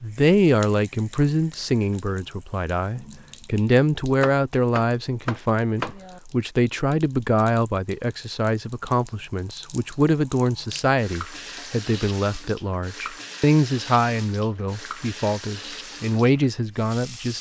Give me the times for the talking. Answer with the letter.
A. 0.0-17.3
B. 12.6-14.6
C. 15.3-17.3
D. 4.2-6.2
A.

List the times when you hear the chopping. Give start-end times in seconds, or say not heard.
4.2-6.2.